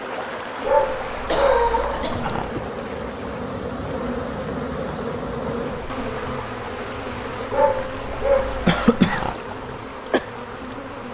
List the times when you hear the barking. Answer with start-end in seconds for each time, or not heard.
0.7-2.5, 7.5-9.3.